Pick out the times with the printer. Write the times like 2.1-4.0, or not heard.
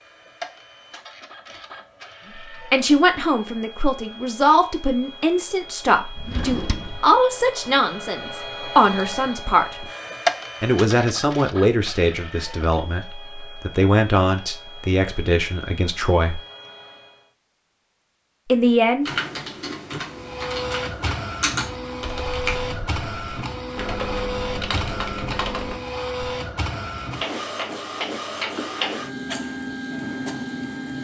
0.0-17.3, 20.1-30.9.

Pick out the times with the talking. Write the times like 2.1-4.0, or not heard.
2.7-9.8, 10.6-16.4, 18.5-19.1.